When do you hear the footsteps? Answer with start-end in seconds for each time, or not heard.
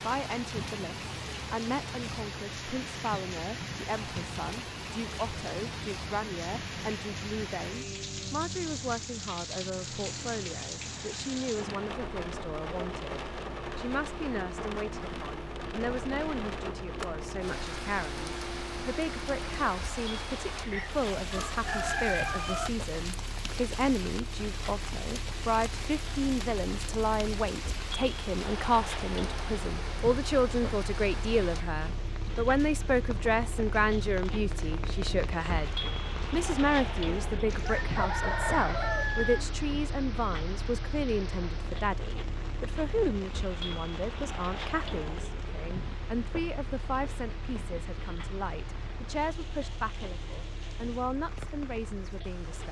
not heard.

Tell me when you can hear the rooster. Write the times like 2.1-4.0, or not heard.
20.7-22.7, 37.6-39.4.